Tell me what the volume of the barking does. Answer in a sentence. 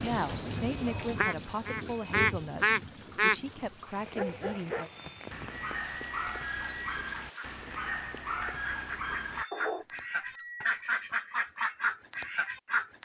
The volume of the barking stays about the same.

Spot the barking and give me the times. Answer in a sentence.
The barking can be heard from 4.0 to 9.8 s.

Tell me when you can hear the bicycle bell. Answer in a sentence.
You can hear the bicycle bell from 0.7 to 2.1 s, from 4.8 to 7.2 s and from 9.3 to 10.8 s.